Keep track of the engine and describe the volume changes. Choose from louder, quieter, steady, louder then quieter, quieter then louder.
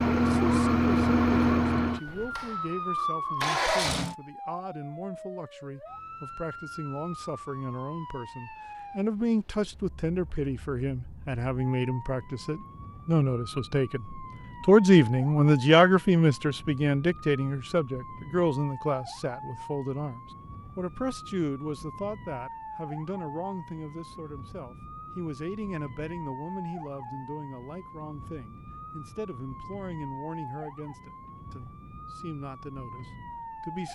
quieter then louder.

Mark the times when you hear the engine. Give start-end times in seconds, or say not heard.
0.0-4.2.